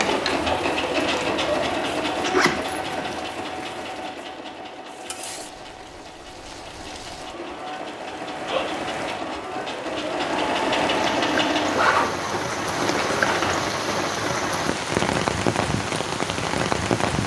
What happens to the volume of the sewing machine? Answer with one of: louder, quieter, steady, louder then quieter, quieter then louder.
quieter then louder.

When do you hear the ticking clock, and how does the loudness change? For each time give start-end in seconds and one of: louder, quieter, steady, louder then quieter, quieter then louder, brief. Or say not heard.
not heard.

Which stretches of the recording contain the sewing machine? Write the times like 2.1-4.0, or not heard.
0.0-11.7.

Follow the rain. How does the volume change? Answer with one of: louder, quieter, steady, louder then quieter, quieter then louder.
quieter then louder.